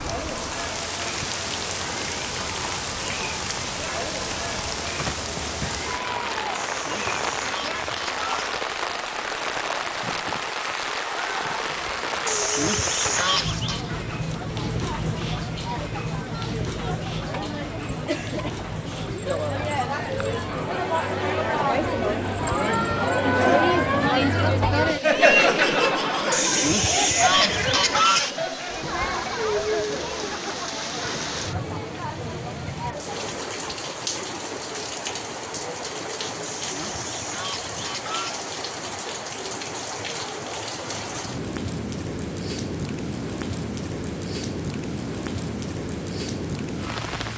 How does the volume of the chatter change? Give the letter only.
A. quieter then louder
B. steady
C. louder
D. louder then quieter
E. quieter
D.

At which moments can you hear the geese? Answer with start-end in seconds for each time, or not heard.
6.5-8.6, 12.2-13.8, 26.3-28.3, 36.4-38.5.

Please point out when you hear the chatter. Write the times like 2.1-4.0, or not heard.
0.0-33.5.